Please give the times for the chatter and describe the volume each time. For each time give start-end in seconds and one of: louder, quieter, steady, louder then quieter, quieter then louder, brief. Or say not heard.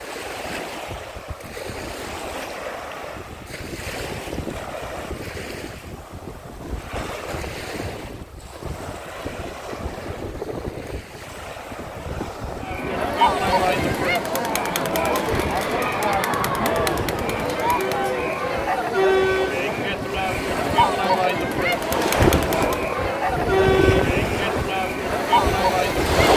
12.6-26.3 steady.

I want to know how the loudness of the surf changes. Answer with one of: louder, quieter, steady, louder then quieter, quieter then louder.
louder.